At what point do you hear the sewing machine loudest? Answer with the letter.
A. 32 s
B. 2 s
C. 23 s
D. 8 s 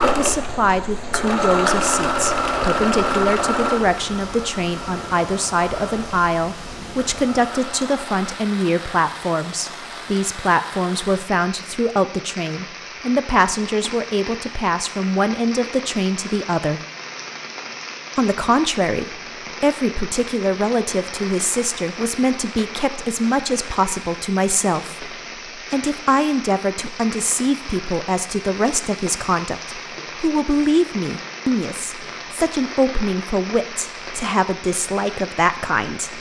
B.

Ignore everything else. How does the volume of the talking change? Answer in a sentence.
The volume of the talking stays about the same.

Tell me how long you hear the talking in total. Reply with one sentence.
You can hear the talking for 35 seconds altogether.